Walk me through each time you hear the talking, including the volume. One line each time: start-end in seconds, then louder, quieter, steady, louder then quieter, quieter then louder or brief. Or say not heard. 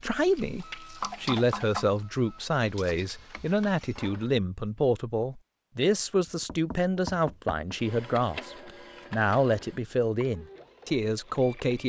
0.0-11.8 steady.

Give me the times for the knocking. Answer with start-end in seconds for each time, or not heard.
1.0-1.9, 6.2-7.8.